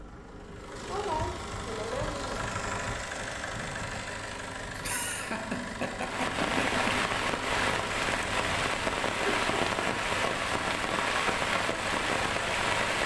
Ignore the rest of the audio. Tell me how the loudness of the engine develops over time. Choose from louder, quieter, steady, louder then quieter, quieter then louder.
steady.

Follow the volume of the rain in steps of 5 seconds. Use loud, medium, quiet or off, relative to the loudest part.
off, loud, loud.